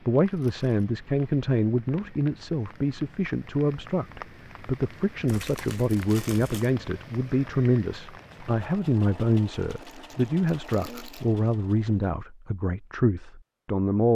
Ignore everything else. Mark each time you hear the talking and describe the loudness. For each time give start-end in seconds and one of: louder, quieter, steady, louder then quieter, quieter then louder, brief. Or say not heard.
0.1-14.0 steady.